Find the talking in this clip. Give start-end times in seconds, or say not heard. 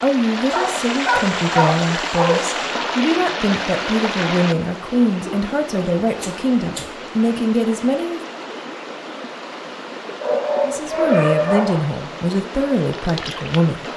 0.0-8.2, 10.7-13.8.